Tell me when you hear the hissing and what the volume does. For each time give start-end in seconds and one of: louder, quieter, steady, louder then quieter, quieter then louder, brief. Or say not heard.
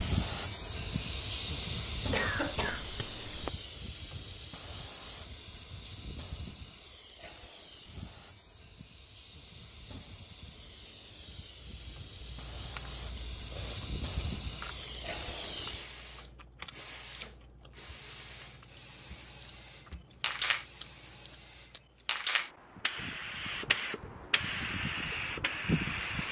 0.0-26.2 quieter then louder.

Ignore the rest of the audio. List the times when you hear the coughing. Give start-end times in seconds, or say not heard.
2.1-3.5.